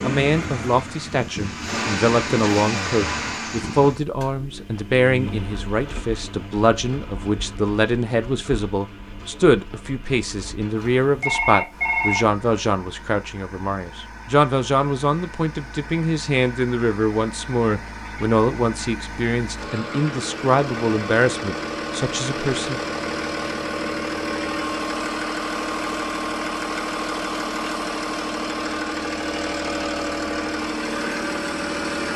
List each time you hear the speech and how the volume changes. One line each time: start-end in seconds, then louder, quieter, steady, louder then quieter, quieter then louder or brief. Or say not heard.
0.0-22.8 steady.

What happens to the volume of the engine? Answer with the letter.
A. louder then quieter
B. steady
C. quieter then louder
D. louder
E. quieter
C.